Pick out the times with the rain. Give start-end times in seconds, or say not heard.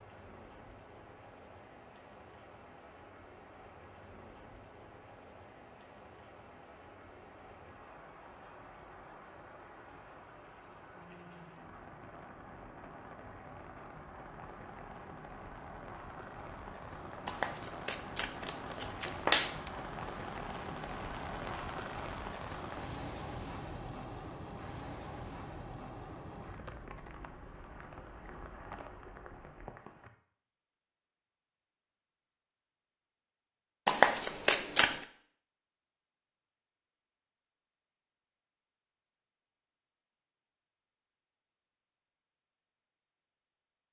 0.0-30.1.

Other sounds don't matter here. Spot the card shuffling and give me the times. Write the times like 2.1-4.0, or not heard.
17.2-19.7, 33.9-35.0.